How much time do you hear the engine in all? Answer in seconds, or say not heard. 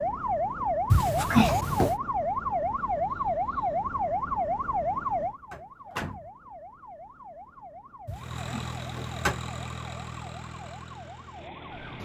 4 s.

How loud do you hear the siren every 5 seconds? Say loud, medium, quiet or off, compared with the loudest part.
loud, medium, quiet.